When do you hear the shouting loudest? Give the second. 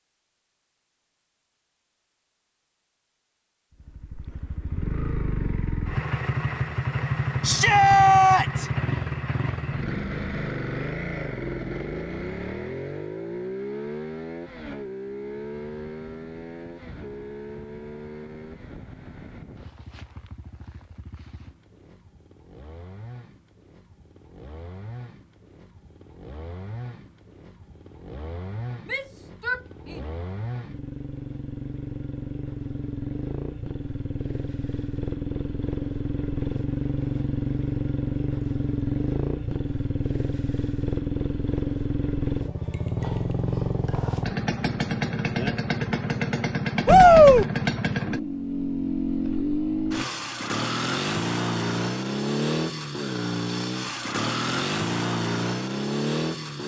47 s.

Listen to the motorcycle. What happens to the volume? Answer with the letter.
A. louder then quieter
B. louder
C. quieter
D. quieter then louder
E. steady
D.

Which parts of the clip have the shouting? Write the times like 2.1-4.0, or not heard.
7.4-8.7, 28.9-30.1, 46.9-47.5.